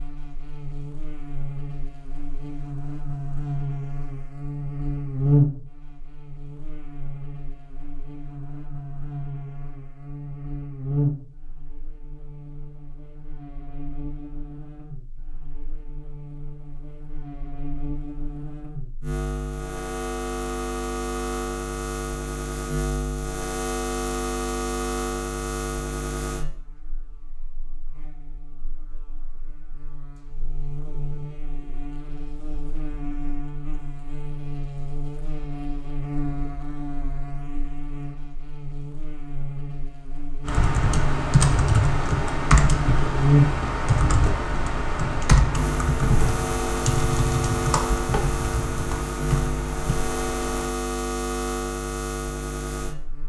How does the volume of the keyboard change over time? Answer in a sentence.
The loudness of the keyboard goes down.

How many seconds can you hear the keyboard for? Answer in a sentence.
You can hear the keyboard for 10 seconds altogether.